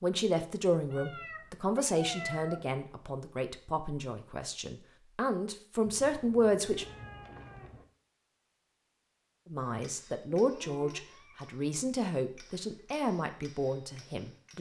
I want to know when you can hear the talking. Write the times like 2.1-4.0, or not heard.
0.0-6.8, 9.4-14.5.